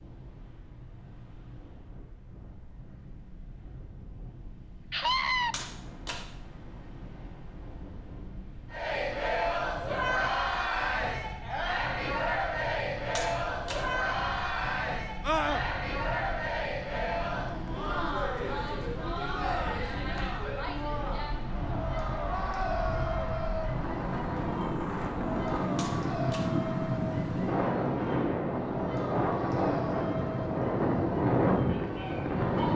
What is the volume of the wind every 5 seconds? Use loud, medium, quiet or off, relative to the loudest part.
quiet, quiet, quiet, quiet, medium, loud, loud.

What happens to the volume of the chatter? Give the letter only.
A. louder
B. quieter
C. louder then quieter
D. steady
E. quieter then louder
B.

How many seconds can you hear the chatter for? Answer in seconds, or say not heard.
24 s.